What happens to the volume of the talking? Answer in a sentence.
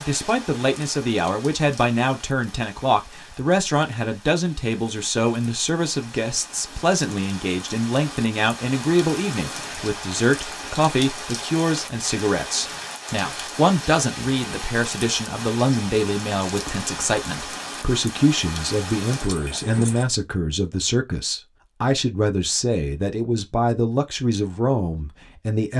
The volume of the talking stays about the same.